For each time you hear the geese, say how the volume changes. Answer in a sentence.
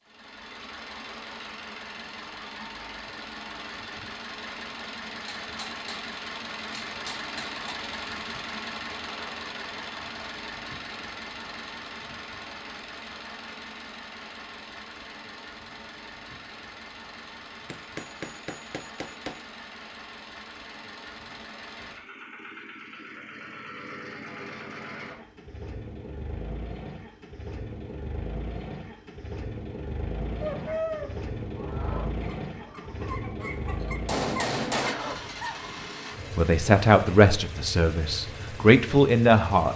You can hear the geese from 30.4 to 35.9 s, getting quieter then louder.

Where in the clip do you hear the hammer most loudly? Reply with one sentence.
The volume of the hammer peaks at 34 seconds.